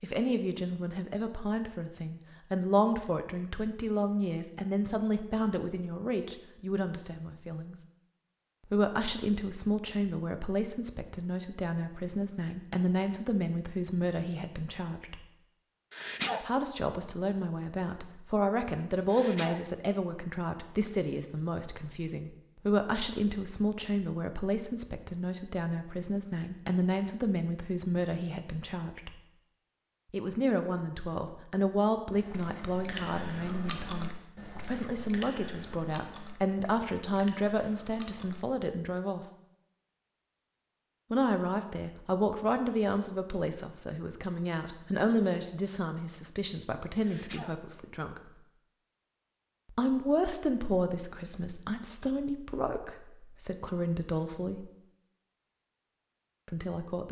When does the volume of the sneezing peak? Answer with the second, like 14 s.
16 s.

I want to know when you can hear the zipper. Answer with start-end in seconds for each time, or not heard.
not heard.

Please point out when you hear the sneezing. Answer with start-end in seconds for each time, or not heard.
15.9-16.4, 19.1-19.6, 47.0-47.5.